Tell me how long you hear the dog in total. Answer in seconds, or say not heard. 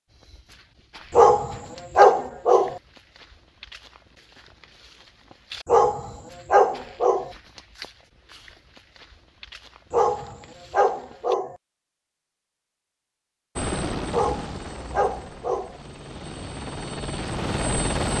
7 s.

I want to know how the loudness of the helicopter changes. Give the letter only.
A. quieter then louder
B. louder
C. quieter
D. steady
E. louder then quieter
A.